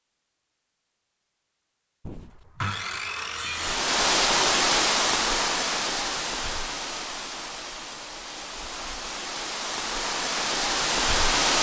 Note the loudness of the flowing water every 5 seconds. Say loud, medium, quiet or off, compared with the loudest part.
loud, medium, loud.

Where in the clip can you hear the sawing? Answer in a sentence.
The sawing can be heard from 2.0 to 3.8 s.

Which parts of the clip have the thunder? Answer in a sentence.
The thunder can't be heard in this clip.